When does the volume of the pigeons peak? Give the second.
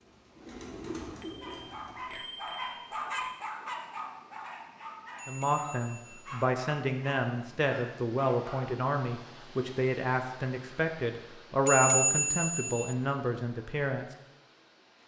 1 s.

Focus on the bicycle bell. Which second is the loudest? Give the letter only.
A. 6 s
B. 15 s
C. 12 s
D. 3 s
C.